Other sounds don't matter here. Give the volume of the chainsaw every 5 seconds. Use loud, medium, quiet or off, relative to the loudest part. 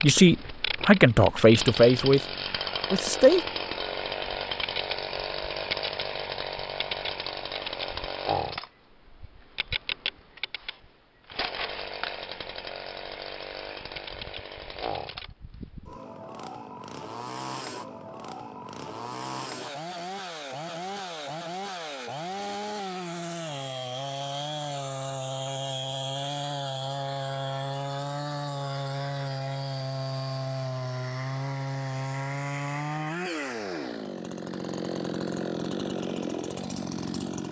loud, loud, medium, medium, loud, loud, loud, loud.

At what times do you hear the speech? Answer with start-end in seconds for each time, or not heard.
0.0-3.5.